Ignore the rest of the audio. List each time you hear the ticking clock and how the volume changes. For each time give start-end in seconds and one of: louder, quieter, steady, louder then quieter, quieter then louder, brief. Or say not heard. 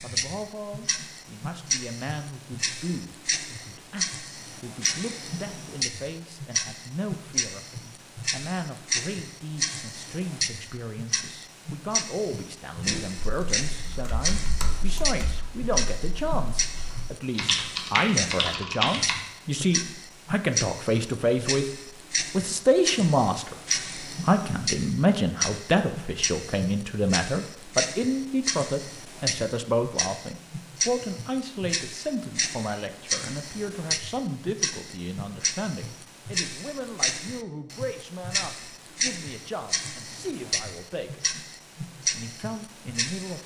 0.0-43.4 steady.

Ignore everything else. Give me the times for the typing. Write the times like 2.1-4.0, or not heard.
12.8-19.1.